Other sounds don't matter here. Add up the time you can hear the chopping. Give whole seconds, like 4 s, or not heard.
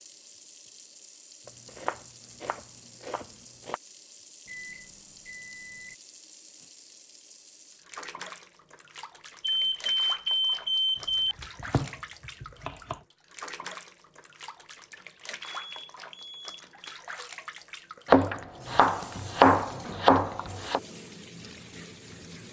7 s.